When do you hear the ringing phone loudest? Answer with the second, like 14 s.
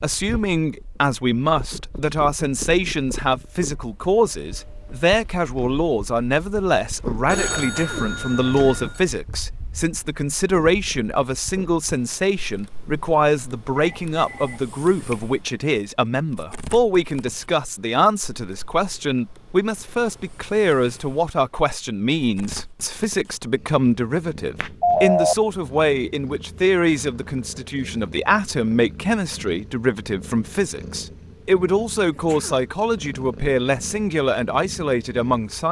25 s.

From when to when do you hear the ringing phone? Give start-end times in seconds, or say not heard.
7.2-9.0, 13.8-15.2, 24.8-25.4.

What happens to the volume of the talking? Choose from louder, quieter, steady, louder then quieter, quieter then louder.
steady.